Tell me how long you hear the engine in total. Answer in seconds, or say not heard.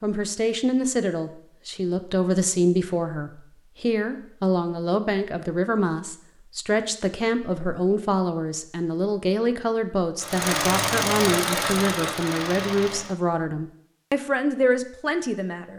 3 s.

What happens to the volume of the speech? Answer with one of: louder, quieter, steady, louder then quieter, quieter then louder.
steady.